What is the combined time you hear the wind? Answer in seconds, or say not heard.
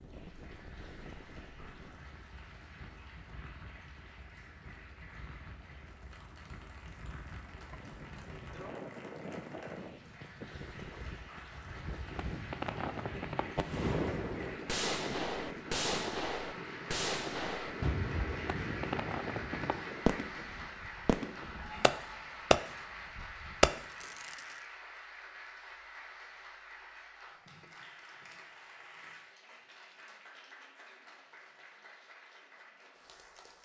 24 s.